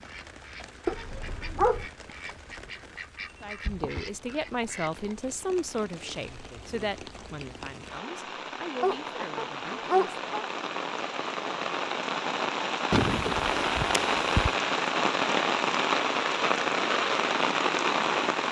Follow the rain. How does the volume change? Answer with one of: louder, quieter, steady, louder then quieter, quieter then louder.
louder.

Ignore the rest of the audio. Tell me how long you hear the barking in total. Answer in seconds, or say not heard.
4 s.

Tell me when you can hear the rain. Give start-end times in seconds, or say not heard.
0.0-18.4.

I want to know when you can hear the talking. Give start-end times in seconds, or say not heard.
3.4-10.2.